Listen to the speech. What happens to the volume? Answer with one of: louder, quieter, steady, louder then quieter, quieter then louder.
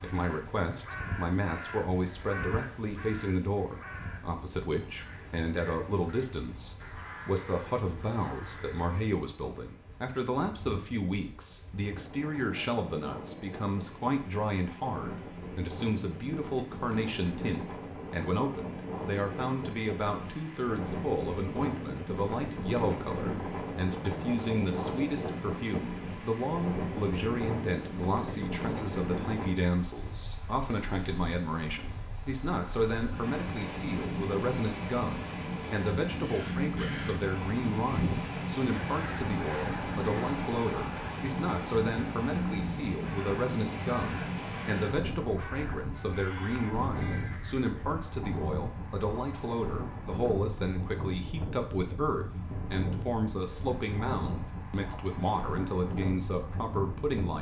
steady.